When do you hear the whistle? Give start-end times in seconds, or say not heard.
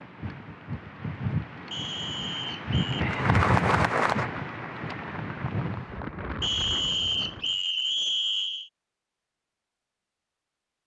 1.7-3.0, 6.4-8.7.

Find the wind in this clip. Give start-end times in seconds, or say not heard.
0.0-7.6.